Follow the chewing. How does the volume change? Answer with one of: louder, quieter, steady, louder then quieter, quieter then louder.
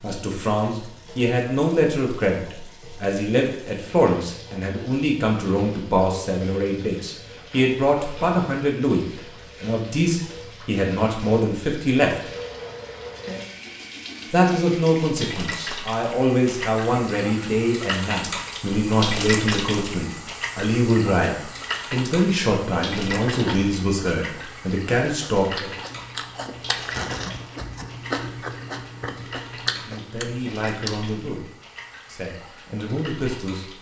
louder.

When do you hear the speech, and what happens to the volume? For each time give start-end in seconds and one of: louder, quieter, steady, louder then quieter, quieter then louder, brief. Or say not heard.
0.0-12.3 steady
14.3-25.7 steady
29.6-33.7 quieter then louder.